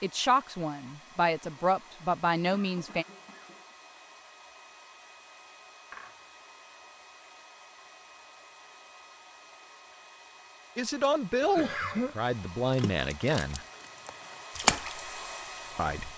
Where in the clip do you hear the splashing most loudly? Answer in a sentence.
The volume of the splashing peaks at 15 seconds.